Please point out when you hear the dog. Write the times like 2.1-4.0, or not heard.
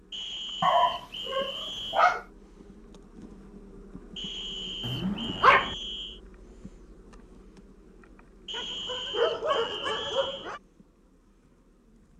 0.6-2.2, 4.8-5.8, 8.5-10.6.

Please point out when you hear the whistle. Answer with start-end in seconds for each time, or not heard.
0.1-2.1, 4.2-6.2, 8.4-10.5.